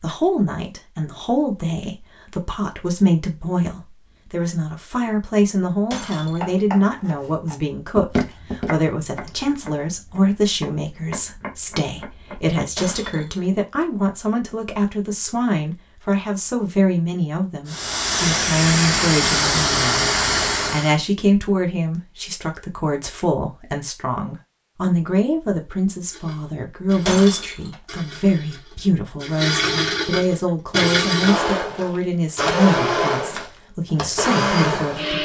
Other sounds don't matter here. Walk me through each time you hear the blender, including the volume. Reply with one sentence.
The blender can be heard from 26.1 to 35.2 s, getting louder.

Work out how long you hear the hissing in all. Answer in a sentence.
You can hear the hissing for 3 seconds altogether.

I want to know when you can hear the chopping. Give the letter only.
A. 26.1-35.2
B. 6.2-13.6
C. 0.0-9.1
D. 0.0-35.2
B.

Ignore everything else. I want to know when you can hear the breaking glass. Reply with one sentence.
You can hear the breaking glass from 5.9 to 6.6 s, from 12.8 to 13.4 s and from 27.1 to 27.8 s.